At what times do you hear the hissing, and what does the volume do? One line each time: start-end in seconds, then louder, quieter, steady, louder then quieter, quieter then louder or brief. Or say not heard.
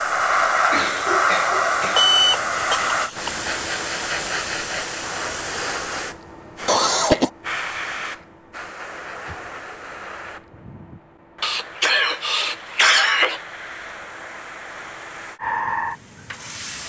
0.0-16.8 quieter then louder.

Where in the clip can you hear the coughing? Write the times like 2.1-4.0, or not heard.
0.7-2.1, 6.7-7.3, 11.4-13.4.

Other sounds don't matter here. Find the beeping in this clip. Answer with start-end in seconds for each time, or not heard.
1.9-3.4.